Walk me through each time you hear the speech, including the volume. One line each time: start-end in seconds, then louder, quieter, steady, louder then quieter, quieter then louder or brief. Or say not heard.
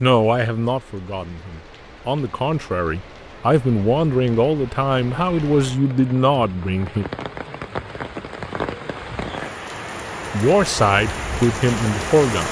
0.0-7.0 louder
10.3-12.4 brief.